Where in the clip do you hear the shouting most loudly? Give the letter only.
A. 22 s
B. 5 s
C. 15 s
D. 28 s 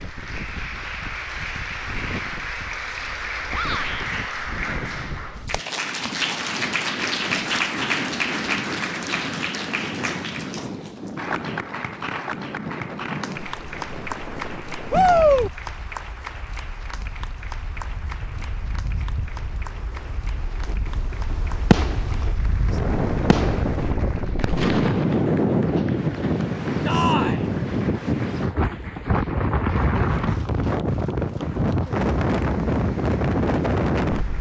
C.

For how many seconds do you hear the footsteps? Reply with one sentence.
You can't hear the footsteps here.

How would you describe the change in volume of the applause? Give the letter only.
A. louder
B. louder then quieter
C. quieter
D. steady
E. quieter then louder
C.